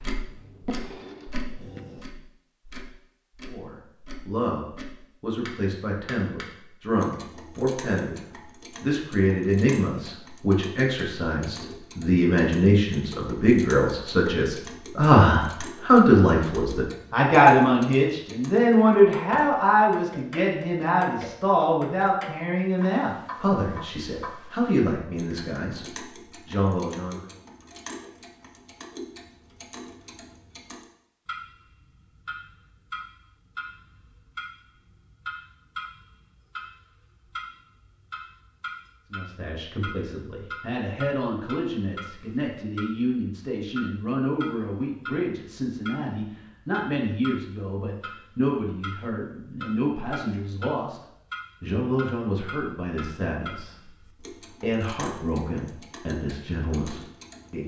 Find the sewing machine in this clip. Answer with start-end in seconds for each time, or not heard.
0.0-2.0.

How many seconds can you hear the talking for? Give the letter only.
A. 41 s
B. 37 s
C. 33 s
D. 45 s
A.